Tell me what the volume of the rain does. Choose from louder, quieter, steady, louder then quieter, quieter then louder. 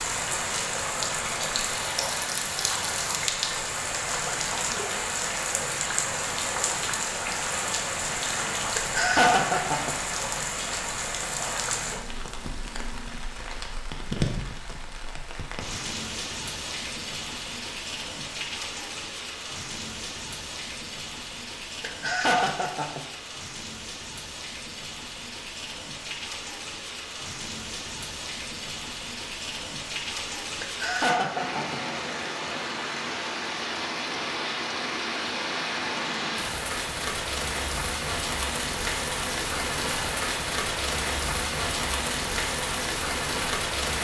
quieter then louder.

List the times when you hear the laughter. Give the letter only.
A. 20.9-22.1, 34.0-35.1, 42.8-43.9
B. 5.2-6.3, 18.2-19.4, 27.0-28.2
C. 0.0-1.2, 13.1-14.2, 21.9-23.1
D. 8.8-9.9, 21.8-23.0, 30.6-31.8
D.